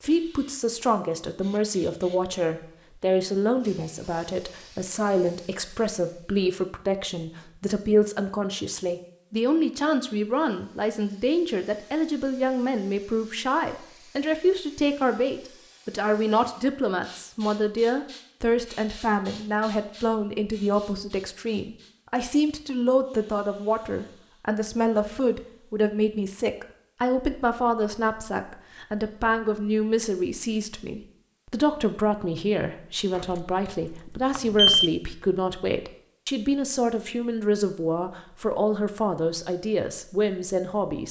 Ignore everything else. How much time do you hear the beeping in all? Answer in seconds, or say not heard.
2 s.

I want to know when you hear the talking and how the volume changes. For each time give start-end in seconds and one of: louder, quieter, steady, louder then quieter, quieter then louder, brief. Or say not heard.
0.0-41.0 steady.